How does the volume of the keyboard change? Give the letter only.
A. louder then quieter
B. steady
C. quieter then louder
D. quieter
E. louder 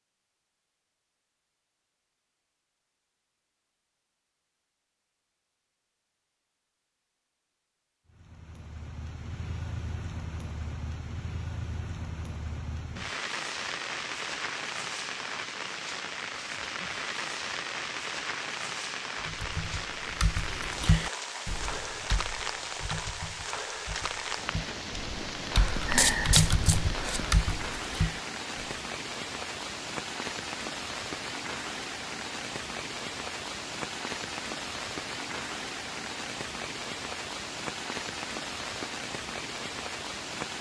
C.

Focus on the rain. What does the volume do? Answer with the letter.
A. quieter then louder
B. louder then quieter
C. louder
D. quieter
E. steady
E.